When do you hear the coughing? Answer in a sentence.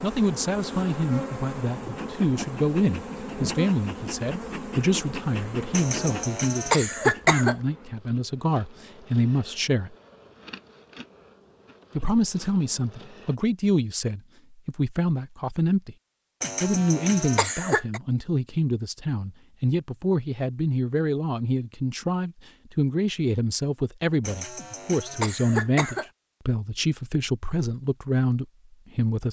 The coughing can be heard from 5.7 to 7.5 s, from 16.4 to 18.0 s and from 24.2 to 26.1 s.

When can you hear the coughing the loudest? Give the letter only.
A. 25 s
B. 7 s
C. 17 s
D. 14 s
B.